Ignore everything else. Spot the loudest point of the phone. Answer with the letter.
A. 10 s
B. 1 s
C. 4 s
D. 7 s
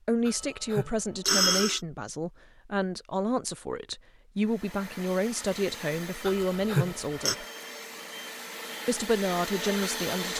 B.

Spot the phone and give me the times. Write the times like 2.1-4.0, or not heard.
0.2-1.8, 6.2-7.3.